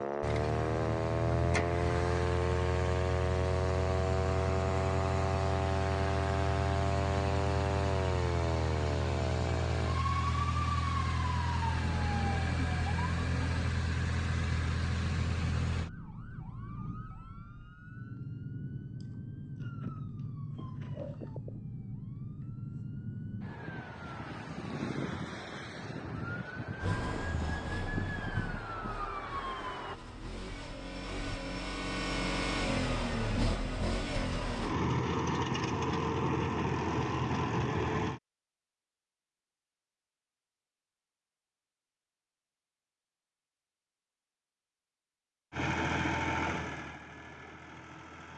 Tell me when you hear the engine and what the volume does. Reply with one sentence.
You can hear the engine from 0.0 to 15.9 s, at a steady volume; from 26.8 to 38.2 s, getting louder; and briefly from 45.5 to 48.3 s.